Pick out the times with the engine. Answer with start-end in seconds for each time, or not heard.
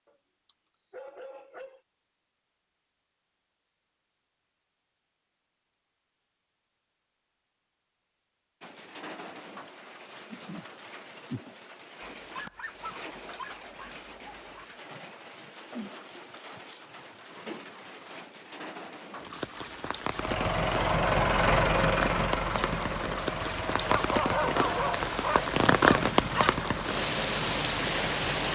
20.1-28.5.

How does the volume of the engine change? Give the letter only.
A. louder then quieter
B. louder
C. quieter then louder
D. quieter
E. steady
D.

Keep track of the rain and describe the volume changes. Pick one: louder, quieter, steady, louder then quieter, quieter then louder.
louder.